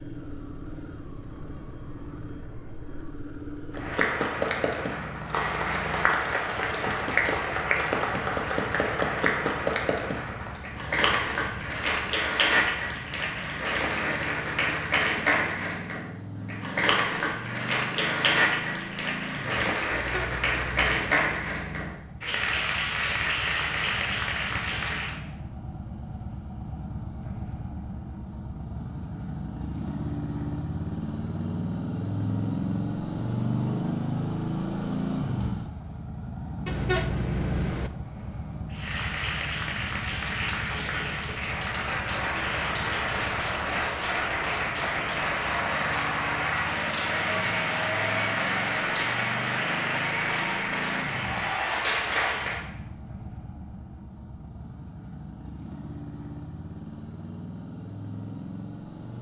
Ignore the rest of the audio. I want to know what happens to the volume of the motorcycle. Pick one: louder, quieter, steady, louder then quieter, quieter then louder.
louder then quieter.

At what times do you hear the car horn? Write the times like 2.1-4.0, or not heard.
19.9-20.9, 36.6-37.9.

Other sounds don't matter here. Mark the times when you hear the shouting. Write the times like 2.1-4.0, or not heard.
not heard.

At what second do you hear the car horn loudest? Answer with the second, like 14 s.
37 s.